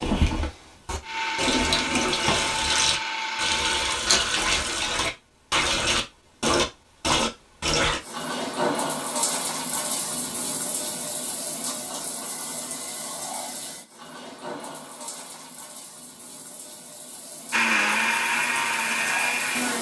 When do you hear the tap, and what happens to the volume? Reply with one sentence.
You can hear the tap from 0.0 to 19.7 s, getting quieter.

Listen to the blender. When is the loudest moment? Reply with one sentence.
The loudest moment of the blender is at 18 seconds.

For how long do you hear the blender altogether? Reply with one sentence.
You can hear the blender for 7 seconds altogether.